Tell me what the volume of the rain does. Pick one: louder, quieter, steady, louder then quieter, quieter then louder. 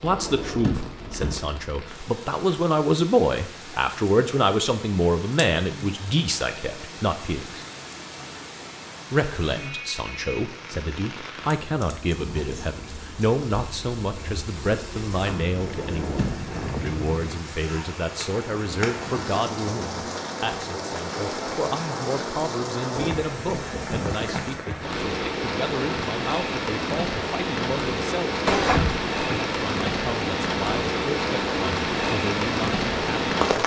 louder.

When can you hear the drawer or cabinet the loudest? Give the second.
29 s.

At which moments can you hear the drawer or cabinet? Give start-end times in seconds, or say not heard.
0.0-1.4, 15.6-16.6, 28.4-29.4.